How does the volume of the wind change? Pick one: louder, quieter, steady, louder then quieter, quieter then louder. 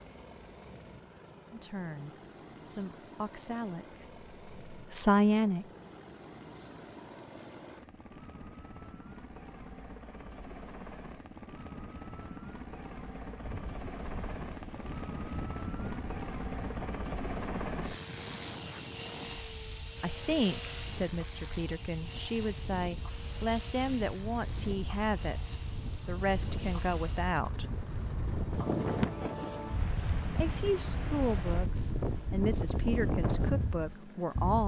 louder.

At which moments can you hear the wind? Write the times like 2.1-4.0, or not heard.
13.4-34.6.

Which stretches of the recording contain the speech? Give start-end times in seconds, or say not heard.
1.5-5.7, 20.0-27.7, 30.4-34.6.